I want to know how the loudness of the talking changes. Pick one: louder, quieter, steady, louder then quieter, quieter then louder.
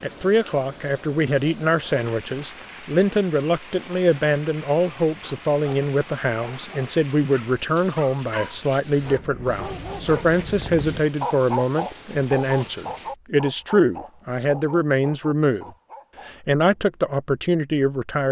steady.